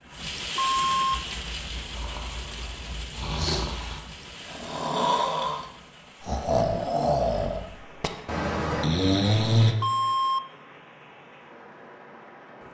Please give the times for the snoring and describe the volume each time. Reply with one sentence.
You can hear the snoring from 1.1 to 9.8 s, getting louder.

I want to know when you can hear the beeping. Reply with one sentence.
The beeping can be heard from 0.6 to 1.1 s and from 9.8 to 10.4 s.